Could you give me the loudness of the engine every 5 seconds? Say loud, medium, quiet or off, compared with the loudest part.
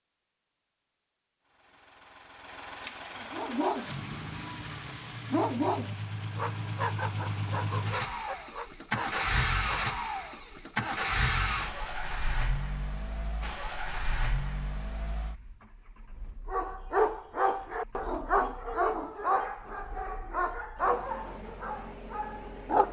medium, loud, loud, quiet, quiet.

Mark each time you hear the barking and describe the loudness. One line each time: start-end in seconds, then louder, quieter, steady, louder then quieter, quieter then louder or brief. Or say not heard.
3.3-9.9 louder then quieter
16.4-22.8 quieter.